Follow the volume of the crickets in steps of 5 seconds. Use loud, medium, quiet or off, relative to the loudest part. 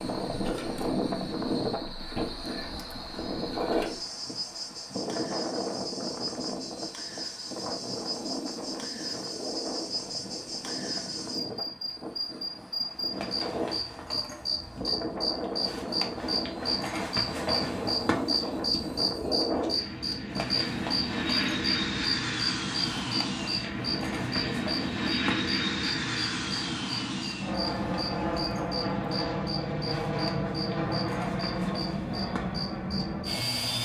medium, medium, loud, loud, loud, medium, medium.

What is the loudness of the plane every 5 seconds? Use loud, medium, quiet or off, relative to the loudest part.
loud, medium, medium, loud, loud, loud, loud.